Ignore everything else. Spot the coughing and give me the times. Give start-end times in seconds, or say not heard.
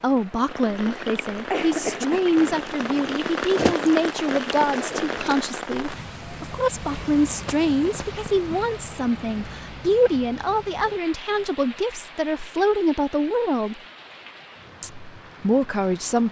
0.7-2.2.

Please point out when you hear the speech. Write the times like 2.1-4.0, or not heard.
0.0-13.8, 14.8-16.2.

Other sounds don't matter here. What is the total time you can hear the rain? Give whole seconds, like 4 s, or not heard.
16 s.